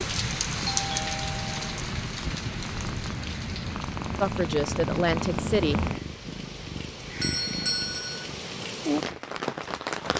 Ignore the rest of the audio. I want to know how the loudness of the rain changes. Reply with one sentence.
The loudness of the rain goes down, then up.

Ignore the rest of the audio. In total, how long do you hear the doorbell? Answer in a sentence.
The doorbell can be heard for 2 seconds in total.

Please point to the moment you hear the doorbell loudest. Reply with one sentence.
The loudest moment of the doorbell is at 8 seconds.